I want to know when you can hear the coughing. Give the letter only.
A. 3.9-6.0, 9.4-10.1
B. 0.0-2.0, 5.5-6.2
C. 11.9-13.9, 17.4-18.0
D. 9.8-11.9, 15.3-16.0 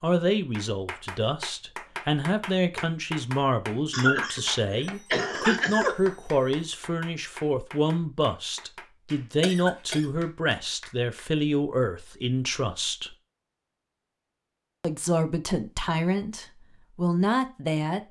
A.